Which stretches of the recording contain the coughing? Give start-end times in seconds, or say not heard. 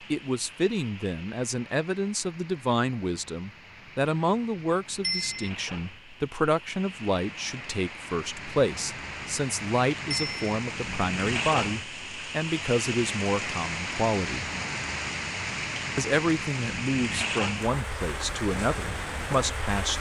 not heard.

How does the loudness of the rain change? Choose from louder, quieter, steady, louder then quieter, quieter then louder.
louder.